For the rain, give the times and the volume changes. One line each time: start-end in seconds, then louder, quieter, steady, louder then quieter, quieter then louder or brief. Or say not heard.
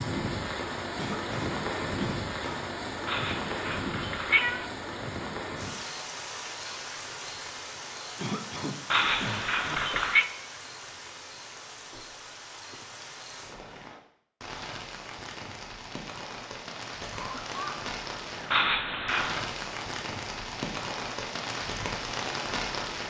0.0-23.0 quieter then louder.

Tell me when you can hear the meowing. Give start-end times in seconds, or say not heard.
3.0-4.7, 8.9-10.3, 18.5-19.4.